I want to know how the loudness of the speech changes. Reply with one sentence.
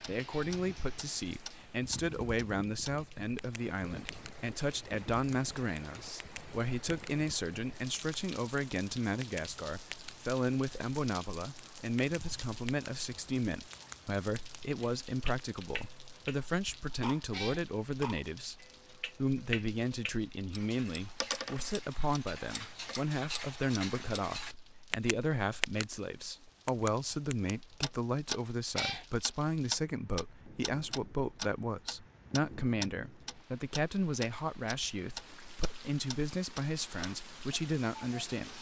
The volume of the speech stays about the same.